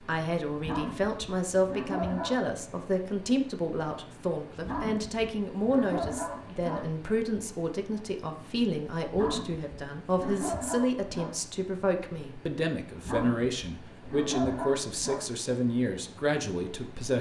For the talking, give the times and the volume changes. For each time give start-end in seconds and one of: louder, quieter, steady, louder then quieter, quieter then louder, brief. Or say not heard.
0.1-17.1 steady.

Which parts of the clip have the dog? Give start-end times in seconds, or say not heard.
0.6-2.4, 4.6-6.9, 9.1-11.3, 13.0-15.2.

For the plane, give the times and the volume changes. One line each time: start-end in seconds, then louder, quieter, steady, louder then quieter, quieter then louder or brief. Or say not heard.
not heard.